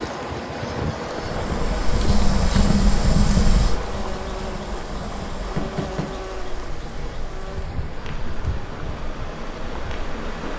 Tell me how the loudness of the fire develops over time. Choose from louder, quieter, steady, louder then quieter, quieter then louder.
quieter.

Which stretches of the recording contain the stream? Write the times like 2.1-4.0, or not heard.
0.0-10.5.